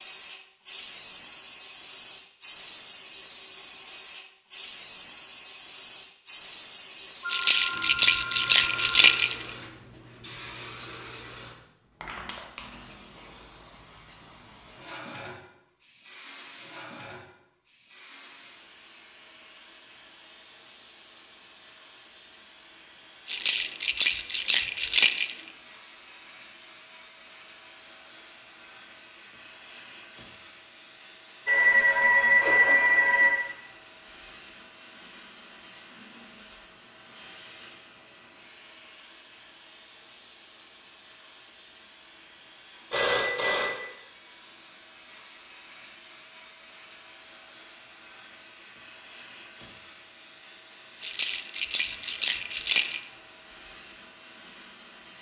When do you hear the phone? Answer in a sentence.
You can hear the phone from 7.2 to 9.2 s, from 31.4 to 33.4 s and from 42.9 to 43.8 s.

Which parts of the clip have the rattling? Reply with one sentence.
The rattling can be heard from 7.3 to 9.4 s, from 23.2 to 25.4 s and from 51.0 to 53.0 s.